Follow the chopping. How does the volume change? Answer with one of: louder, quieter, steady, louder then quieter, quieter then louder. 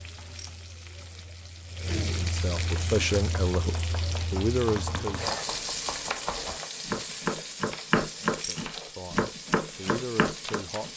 louder.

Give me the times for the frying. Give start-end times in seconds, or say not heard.
0.0-10.9.